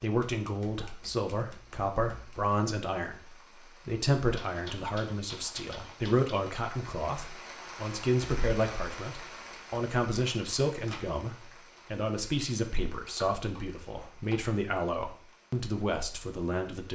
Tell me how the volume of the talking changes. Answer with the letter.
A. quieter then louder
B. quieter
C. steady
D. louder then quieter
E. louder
C.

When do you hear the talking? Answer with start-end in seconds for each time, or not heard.
0.0-16.9.